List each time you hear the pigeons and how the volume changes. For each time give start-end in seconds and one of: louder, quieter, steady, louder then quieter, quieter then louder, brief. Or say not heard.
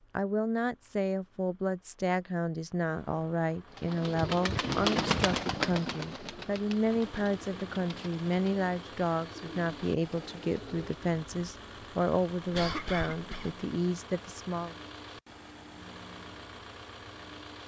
3.6-11.1 quieter.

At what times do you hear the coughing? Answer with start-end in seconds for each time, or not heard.
12.5-13.6.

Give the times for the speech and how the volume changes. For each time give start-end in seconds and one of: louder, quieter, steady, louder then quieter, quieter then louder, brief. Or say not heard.
0.1-14.8 steady.